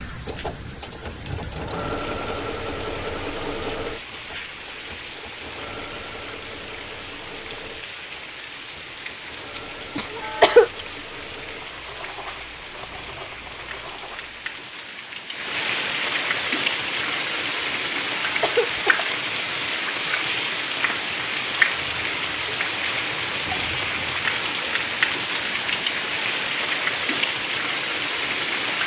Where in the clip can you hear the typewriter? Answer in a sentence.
You can't hear the typewriter here.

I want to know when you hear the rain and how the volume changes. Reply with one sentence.
You can hear the rain from 0.0 to 28.8 s, getting louder.